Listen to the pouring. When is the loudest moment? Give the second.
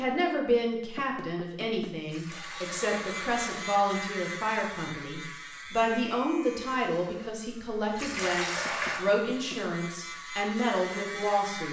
9 s.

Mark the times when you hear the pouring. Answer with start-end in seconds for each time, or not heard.
2.0-3.5, 8.0-9.1.